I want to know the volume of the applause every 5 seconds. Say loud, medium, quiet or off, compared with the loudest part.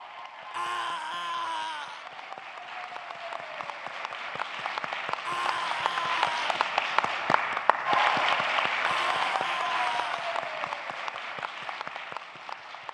medium, loud, medium.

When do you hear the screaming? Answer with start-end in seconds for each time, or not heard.
0.5-2.0, 5.2-6.5, 8.8-10.3.